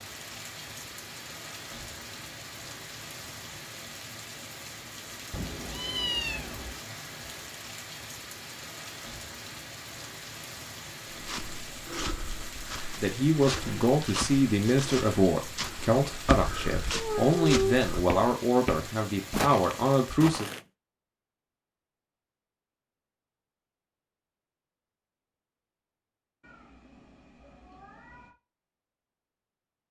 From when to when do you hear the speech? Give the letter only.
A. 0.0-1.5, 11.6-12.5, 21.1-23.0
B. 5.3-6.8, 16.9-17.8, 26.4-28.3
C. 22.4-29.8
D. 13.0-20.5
D.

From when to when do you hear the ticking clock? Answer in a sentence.
The ticking clock can't be heard in this clip.